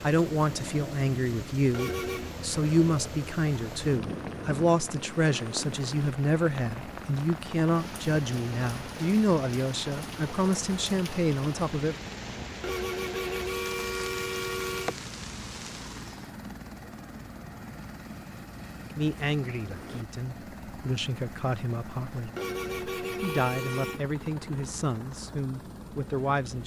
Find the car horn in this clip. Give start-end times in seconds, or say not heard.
1.7-2.4, 12.6-15.0, 22.4-24.0.